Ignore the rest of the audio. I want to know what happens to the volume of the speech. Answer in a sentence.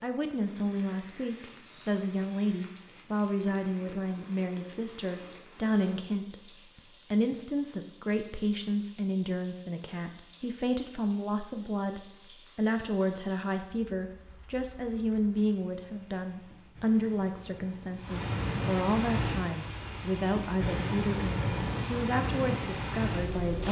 The loudness of the speech stays about the same.